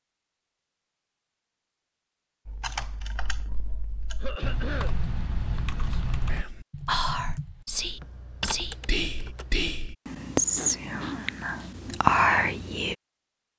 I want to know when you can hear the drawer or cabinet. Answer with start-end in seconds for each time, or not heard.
not heard.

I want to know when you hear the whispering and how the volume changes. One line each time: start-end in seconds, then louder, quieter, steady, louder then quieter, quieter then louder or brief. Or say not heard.
5.8-12.9 louder.